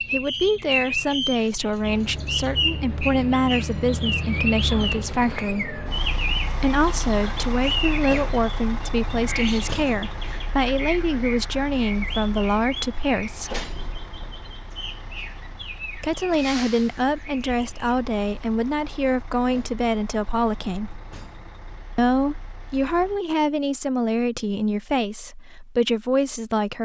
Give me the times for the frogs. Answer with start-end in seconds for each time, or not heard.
not heard.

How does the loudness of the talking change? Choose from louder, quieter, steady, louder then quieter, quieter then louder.
steady.